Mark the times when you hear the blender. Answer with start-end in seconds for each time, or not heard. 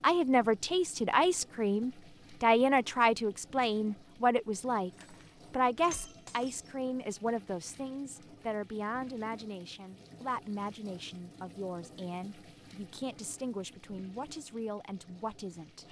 not heard.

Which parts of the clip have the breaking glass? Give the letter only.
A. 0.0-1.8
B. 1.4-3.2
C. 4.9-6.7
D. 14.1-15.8
C.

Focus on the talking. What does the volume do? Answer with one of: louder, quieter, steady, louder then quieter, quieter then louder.
quieter.